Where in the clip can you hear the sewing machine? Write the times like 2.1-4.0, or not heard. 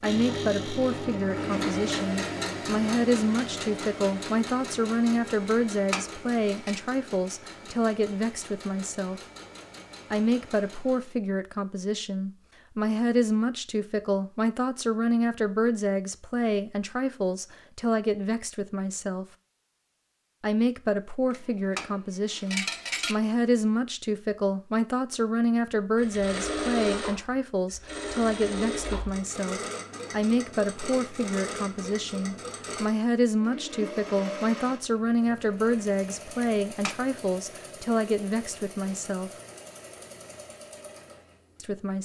0.0-11.2, 25.9-41.9.